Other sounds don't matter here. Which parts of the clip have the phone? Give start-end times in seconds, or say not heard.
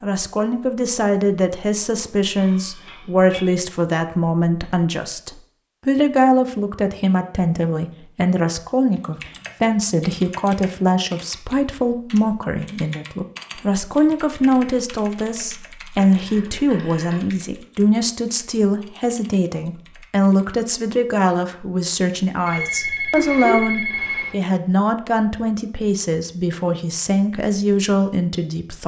2.4-3.5, 15.9-17.2, 22.4-24.4.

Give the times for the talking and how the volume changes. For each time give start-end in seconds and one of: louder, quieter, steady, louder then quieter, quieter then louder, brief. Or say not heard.
0.0-28.8 steady.